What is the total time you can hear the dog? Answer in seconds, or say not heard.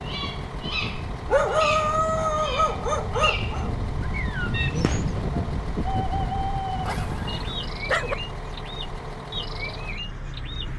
4 s.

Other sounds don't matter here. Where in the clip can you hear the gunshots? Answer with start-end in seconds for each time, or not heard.
4.8-5.3.